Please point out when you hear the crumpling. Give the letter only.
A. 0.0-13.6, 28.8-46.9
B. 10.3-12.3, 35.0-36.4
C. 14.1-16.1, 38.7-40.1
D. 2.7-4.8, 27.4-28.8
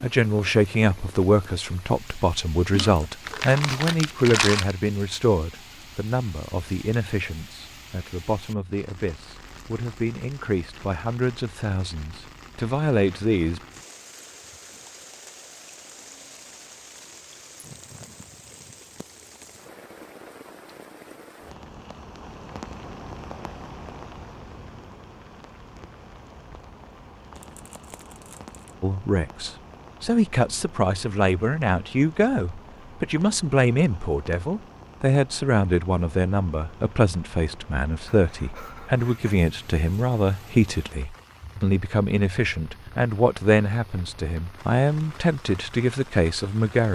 D.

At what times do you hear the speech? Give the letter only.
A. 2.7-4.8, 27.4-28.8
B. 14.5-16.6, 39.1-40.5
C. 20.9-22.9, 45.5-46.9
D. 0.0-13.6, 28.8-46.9
D.